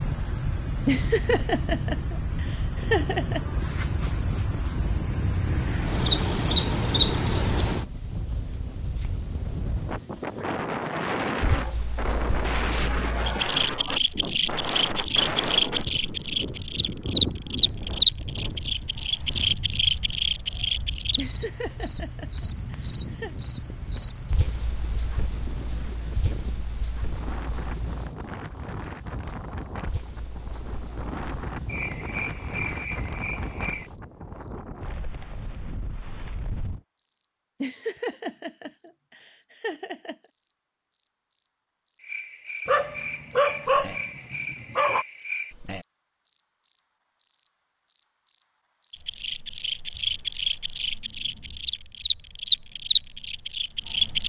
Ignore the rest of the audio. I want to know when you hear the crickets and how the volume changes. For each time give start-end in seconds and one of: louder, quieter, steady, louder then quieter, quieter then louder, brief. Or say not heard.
0.0-54.2 quieter then louder.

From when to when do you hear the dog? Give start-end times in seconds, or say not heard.
42.6-45.0.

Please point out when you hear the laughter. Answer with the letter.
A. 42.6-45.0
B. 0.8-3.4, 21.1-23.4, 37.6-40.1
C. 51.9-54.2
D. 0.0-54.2
B.